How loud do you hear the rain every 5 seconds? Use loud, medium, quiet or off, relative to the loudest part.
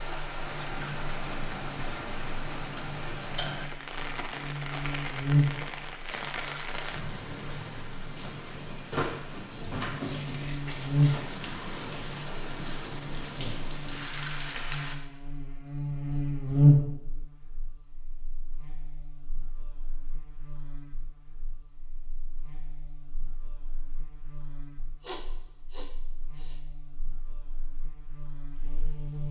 loud, loud, loud, off, off, off.